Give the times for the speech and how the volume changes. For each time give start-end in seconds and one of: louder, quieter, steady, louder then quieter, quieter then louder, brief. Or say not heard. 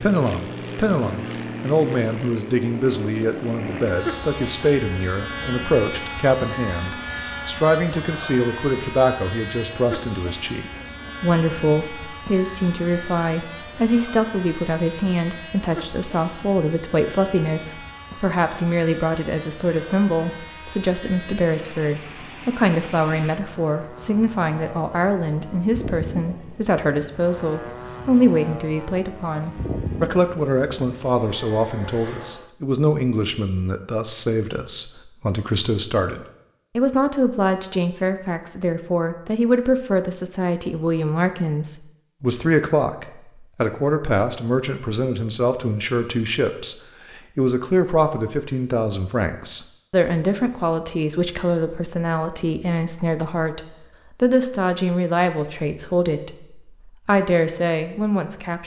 0.0-58.6 steady.